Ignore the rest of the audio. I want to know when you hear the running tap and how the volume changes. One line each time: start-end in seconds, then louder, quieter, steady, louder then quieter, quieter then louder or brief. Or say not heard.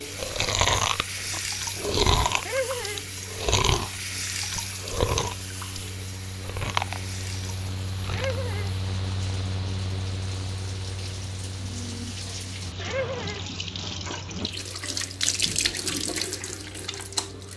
0.0-17.5 quieter then louder.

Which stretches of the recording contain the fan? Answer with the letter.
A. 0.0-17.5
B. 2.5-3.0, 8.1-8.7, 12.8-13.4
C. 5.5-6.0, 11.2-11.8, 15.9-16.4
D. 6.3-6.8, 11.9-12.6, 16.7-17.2
A.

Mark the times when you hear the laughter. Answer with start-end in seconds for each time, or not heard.
2.5-3.0, 8.1-8.7, 12.8-13.4.